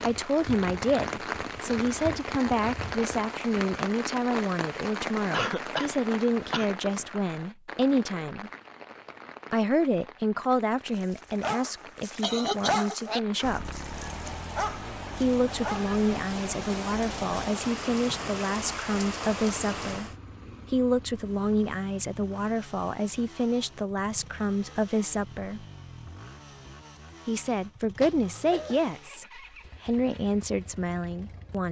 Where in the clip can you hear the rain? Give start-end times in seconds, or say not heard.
0.0-20.1.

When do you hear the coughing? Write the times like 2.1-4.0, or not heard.
5.3-6.7, 12.2-12.9, 28.0-28.9.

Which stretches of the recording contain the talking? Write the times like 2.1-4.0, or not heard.
0.0-8.5, 9.5-13.7, 15.2-20.1, 20.7-25.6, 27.2-31.6.